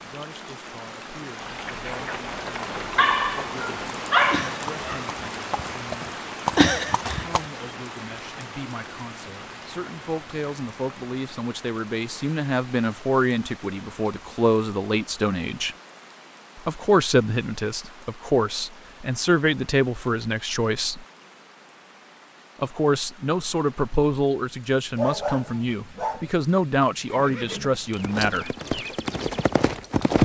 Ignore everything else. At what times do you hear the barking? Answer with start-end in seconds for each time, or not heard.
3.0-5.0, 24.9-26.4.